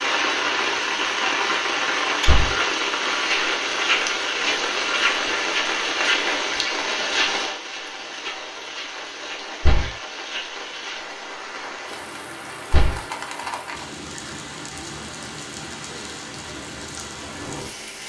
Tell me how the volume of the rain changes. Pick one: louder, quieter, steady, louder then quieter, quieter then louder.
quieter.